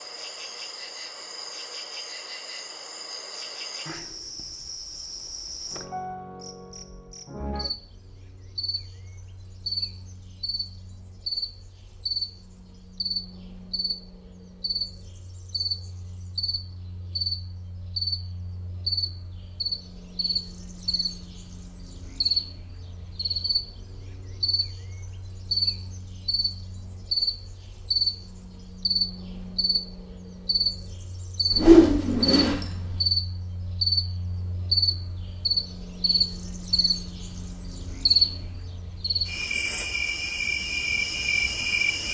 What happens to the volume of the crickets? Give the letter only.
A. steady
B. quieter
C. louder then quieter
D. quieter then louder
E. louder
E.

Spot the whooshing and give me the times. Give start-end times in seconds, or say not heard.
31.5-33.0.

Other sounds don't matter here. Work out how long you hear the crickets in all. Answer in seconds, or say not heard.
42 s.